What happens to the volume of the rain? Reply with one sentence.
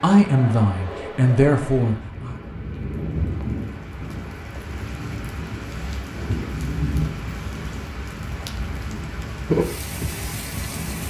The volume of the rain goes up.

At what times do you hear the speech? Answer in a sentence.
You can hear the speech from 0.0 to 2.4 s.